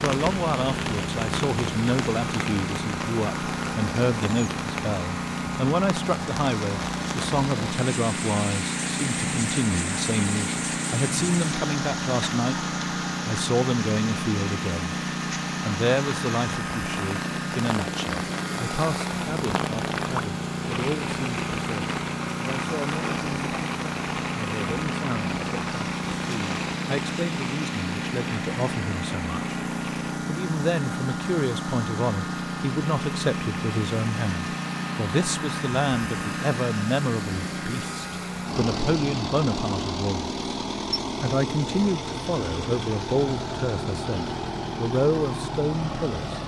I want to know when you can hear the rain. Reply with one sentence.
The rain can be heard from 0.0 to 30.1 s.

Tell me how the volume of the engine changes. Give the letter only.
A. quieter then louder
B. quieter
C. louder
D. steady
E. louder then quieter
D.